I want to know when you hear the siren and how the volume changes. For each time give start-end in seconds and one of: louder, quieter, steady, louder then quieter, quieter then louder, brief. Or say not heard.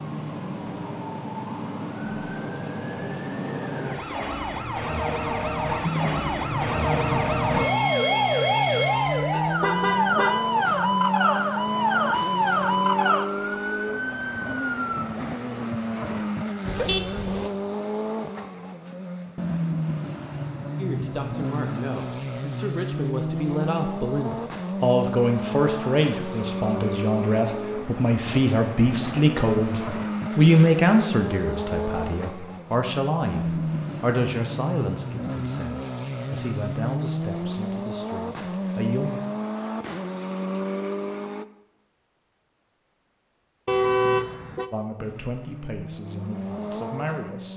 0.0-15.1 louder.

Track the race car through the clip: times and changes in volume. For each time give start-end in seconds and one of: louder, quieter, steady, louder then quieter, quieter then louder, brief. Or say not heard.
5.8-41.5 steady
45.0-47.5 brief.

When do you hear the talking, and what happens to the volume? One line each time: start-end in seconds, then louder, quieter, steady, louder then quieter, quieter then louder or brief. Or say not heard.
20.8-39.2 louder then quieter
44.7-47.5 brief.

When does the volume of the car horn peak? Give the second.
44 s.